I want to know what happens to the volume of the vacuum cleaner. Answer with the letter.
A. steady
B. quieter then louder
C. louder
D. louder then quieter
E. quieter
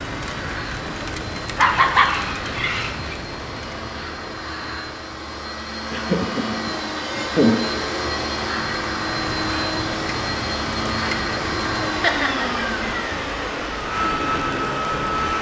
C.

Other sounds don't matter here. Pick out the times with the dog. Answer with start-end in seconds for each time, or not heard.
1.6-3.1.